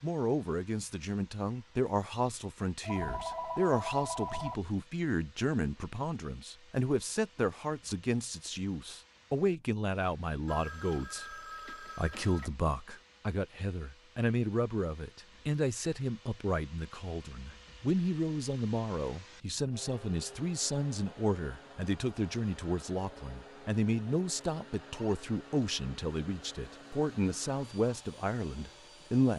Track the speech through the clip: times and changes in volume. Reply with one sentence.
You can hear the speech from 0.0 to 29.3 s, at a steady volume.